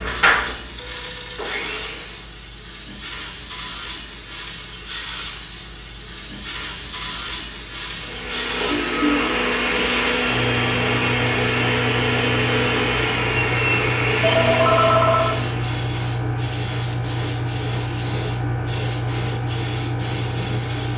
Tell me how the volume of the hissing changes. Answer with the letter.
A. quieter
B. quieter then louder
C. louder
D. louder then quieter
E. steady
C.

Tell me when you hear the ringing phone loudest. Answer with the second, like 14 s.
15 s.